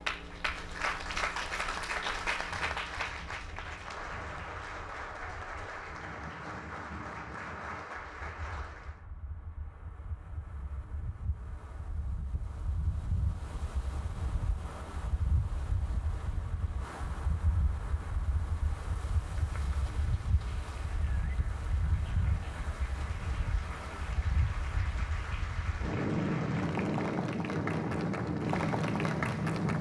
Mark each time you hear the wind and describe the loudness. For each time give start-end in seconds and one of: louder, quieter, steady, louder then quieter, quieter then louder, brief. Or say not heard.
0.0-29.7 louder.